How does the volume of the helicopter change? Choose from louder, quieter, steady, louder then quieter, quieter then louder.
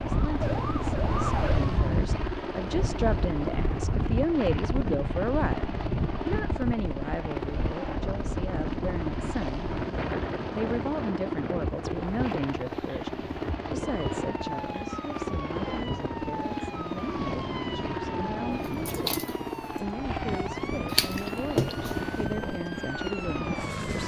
steady.